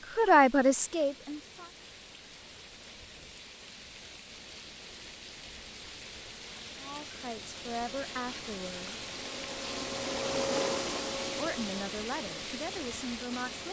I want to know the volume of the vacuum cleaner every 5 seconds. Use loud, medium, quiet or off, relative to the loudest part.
off, medium, loud.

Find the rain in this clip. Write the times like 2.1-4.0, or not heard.
0.0-13.6.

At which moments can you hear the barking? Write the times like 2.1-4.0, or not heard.
not heard.